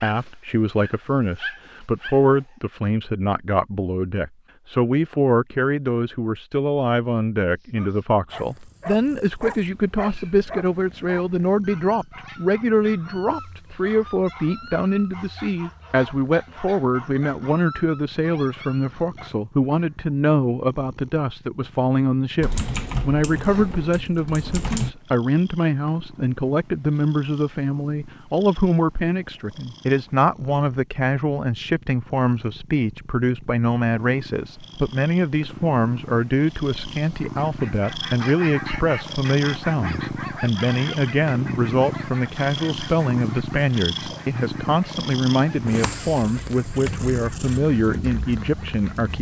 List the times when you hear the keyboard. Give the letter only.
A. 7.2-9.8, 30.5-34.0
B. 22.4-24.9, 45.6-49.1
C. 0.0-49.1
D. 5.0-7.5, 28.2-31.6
B.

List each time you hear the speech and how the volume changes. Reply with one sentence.
The speech can be heard from 0.0 to 49.1 s, at a steady volume.